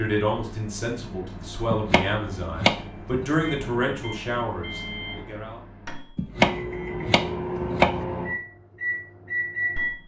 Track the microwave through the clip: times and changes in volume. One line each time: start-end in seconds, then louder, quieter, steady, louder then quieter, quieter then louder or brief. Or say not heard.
0.2-10.0 louder.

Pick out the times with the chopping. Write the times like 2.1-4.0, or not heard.
1.7-3.2, 6.2-8.1.